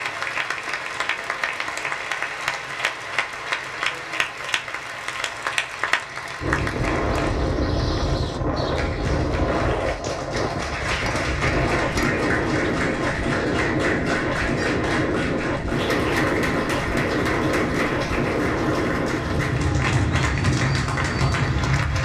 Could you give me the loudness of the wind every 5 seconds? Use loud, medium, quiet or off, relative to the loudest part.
off, loud, loud, loud, loud.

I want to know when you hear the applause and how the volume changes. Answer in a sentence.
You can hear the applause from 0.0 to 22.0 s, at a steady volume.